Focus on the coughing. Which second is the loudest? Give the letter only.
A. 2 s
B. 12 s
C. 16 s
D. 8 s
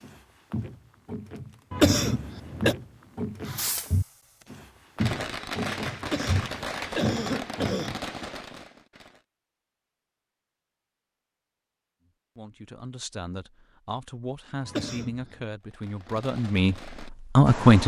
A.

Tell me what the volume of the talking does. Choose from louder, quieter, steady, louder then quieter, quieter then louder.
louder.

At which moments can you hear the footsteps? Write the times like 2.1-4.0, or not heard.
0.0-7.8.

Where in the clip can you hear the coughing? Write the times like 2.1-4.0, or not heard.
1.7-2.8, 6.0-8.0, 14.7-15.4.